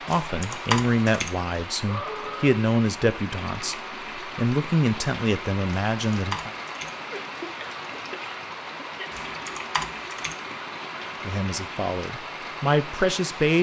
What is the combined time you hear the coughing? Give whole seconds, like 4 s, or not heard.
2 s.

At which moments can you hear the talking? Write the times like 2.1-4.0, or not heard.
0.1-6.5, 11.2-13.5.